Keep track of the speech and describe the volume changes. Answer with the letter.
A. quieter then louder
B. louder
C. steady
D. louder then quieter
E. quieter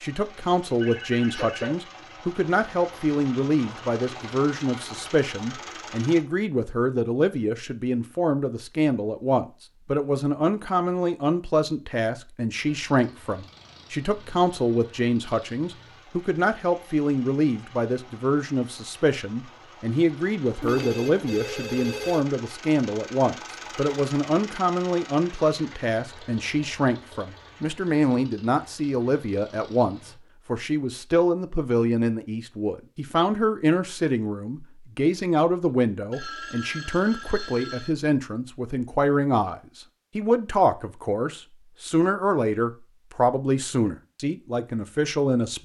C.